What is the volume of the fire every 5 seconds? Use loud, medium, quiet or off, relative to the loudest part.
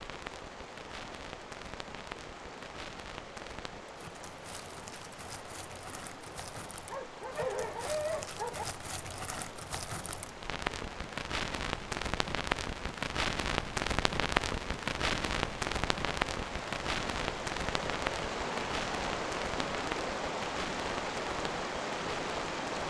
quiet, medium, loud, loud, medium.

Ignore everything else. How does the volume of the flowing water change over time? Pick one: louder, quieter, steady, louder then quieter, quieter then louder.
louder.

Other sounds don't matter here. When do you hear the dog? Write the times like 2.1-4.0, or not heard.
6.9-8.7.